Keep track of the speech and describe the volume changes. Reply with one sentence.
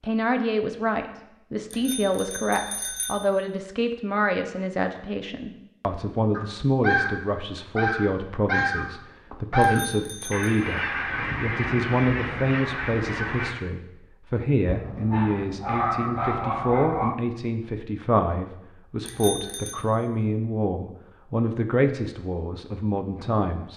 The loudness of the speech stays about the same.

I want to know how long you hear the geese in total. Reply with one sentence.
The geese can be heard for 7 seconds in total.